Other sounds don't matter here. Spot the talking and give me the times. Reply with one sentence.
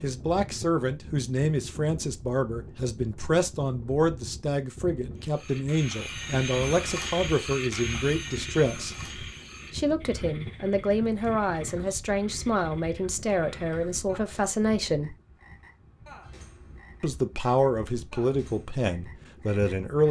You can hear the talking from 0.0 to 8.9 s, from 9.7 to 15.2 s and from 17.0 to 20.0 s.